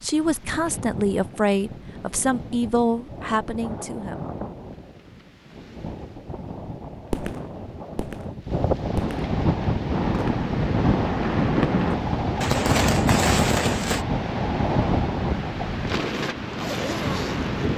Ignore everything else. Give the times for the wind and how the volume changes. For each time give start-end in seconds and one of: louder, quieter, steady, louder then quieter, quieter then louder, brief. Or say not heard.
0.0-17.7 louder.